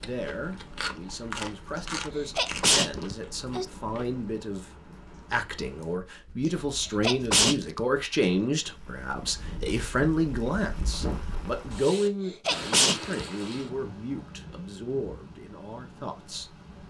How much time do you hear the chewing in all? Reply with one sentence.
You can hear the chewing for 4 seconds altogether.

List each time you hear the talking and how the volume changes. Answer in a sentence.
You can hear the talking from 0.0 to 16.5 s, getting louder then quieter.